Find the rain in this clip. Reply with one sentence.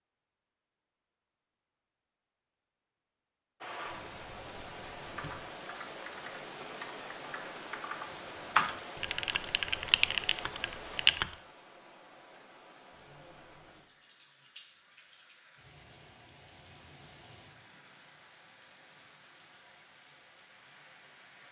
The rain can be heard from 3.6 to 21.4 s.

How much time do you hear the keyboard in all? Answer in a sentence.
The keyboard can be heard for 6 seconds in total.